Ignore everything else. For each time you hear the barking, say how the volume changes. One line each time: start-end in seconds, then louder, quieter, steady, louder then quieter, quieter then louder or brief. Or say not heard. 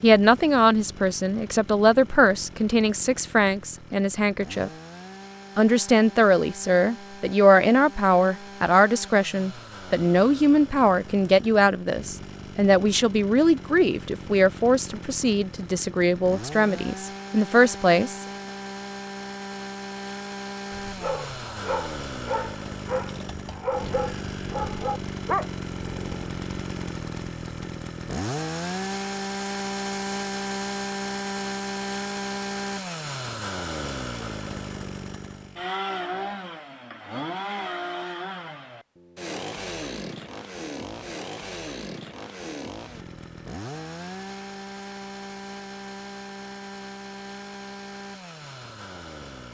20.8-26.3 louder.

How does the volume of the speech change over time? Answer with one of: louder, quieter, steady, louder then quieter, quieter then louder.
steady.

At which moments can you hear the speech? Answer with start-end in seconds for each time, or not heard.
0.0-4.7, 5.5-18.2.